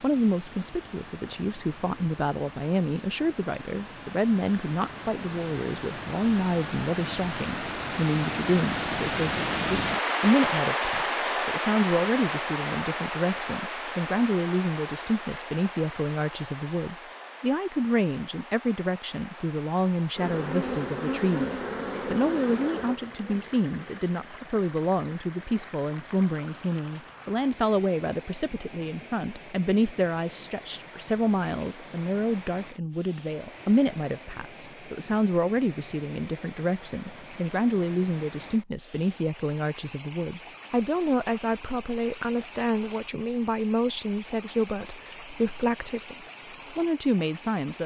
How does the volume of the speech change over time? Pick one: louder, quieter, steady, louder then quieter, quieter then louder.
steady.